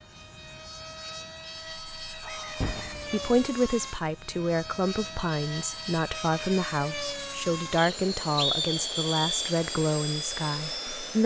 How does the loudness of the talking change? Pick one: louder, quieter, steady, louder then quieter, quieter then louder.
steady.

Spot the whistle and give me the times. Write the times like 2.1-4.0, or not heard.
2.2-3.0, 7.8-9.6.